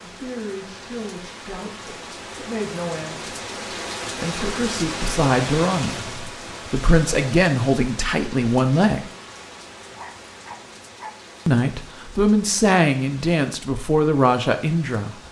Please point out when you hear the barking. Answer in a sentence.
You can hear the barking from 9.2 to 11.2 s.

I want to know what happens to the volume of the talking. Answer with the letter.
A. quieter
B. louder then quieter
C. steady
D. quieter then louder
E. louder
E.